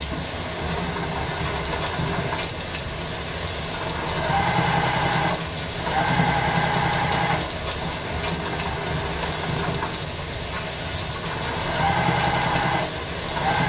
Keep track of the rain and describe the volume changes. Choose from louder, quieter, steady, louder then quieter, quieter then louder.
steady.